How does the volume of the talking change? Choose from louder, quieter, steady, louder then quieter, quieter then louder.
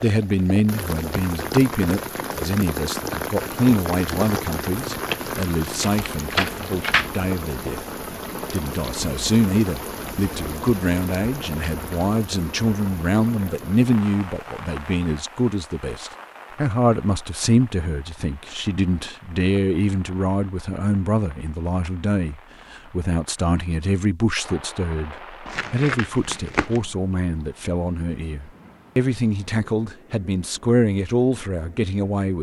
steady.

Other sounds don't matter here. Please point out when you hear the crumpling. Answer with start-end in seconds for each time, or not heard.
5.1-7.1, 25.4-26.8.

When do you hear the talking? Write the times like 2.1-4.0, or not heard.
0.0-7.8, 8.5-32.3.